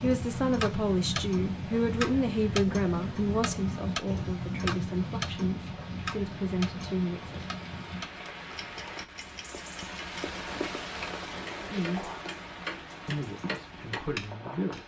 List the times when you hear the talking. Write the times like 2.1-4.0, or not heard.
0.0-7.4, 11.6-12.1, 13.1-14.8.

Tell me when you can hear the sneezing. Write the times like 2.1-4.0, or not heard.
not heard.